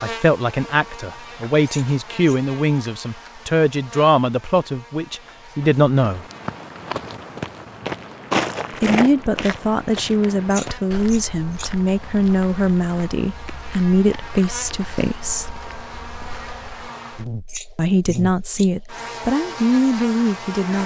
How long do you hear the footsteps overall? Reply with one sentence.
You can hear the footsteps for 11 seconds altogether.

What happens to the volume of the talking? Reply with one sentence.
The volume of the talking stays about the same.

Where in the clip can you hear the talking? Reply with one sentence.
You can hear the talking from 0.0 to 6.2 s, from 8.7 to 15.6 s and from 17.8 to 20.8 s.